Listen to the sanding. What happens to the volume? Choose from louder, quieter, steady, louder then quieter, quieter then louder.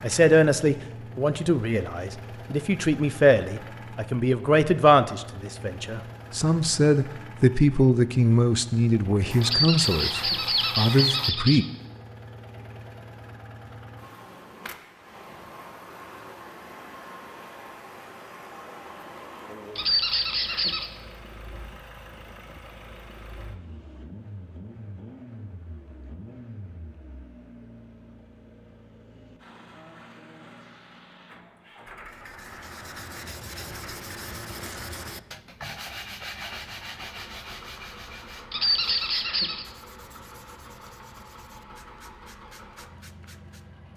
quieter.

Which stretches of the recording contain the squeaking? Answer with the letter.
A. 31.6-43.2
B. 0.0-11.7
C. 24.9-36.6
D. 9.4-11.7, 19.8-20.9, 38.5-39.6
D.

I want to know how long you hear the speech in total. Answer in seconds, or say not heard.
12 s.